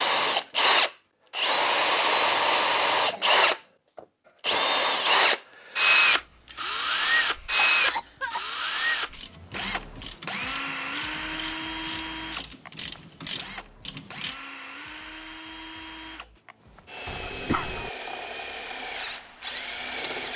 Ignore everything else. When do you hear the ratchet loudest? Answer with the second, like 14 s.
13 s.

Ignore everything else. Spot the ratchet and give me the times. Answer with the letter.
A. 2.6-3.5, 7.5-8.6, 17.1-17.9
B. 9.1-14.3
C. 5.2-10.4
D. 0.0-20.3
B.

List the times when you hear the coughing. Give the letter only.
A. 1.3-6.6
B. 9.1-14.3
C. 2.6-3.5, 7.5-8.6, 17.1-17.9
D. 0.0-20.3
C.